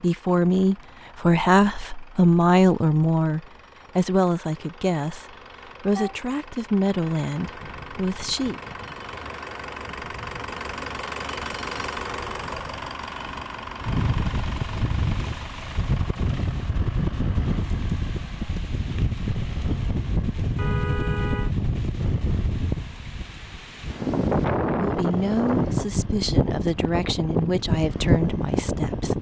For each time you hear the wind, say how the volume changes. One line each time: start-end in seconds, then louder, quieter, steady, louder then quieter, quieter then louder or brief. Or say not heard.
7.5-29.1 louder.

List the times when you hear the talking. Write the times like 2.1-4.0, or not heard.
0.0-8.6, 24.8-29.1.